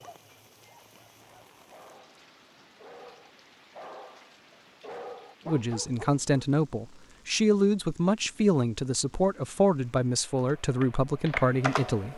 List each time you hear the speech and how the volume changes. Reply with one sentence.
You can hear the speech from 5.5 to 12.1 s, at a steady volume.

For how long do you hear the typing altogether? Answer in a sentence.
You can hear the typing for 2 seconds altogether.